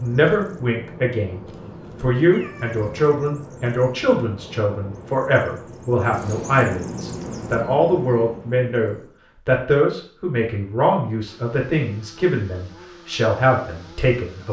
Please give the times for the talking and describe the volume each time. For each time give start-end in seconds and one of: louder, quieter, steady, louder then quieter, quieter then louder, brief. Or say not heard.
0.0-14.4 steady.